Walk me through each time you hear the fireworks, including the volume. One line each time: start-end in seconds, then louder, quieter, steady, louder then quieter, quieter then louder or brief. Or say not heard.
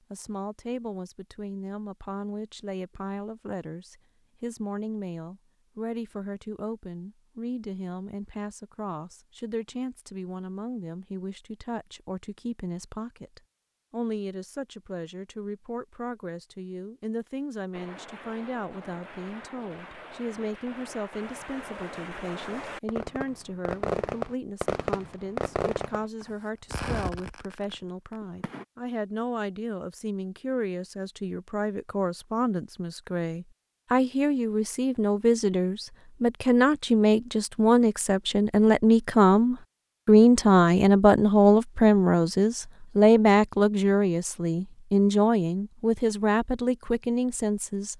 17.7-28.6 louder then quieter.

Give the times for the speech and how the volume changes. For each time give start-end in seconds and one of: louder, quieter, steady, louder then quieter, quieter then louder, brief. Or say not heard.
0.1-47.9 louder.